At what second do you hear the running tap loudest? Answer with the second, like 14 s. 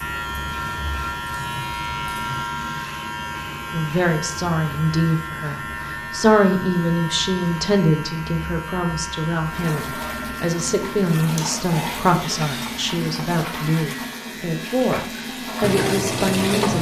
16 s.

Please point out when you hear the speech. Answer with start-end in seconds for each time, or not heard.
3.7-16.7.